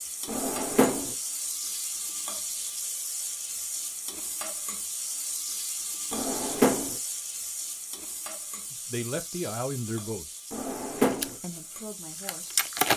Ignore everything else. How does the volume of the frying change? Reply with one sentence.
The loudness of the frying goes down.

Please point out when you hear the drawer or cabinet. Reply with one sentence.
The drawer or cabinet can be heard from 0.2 to 1.1 s, from 6.1 to 7.0 s and from 10.5 to 11.3 s.